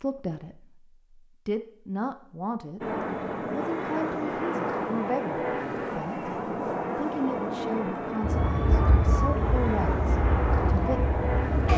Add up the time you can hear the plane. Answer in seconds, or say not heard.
9 s.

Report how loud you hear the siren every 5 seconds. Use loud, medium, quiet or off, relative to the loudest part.
off, loud, loud.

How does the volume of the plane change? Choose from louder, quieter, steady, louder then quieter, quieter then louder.
steady.